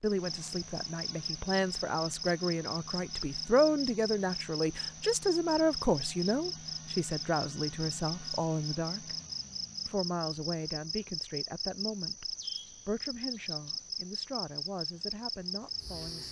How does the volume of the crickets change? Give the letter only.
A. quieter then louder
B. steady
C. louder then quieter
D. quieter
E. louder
B.